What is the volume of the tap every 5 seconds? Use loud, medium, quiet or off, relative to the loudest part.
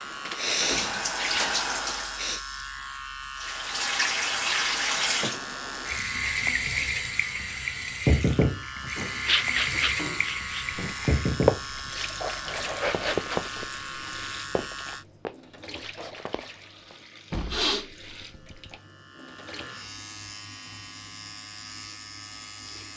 loud, loud, medium, quiet, off.